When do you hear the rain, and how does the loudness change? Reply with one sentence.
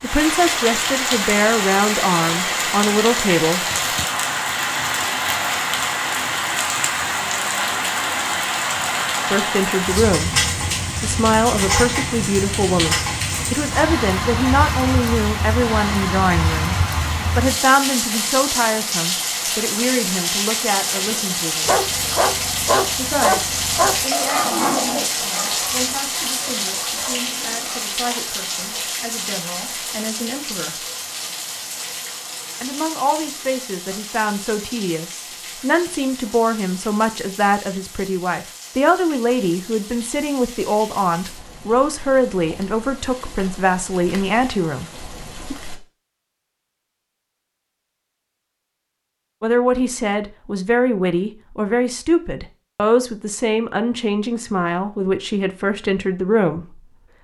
You can hear the rain from 0.0 to 45.8 s, getting quieter.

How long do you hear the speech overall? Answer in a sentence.
You can hear the speech for 44 seconds altogether.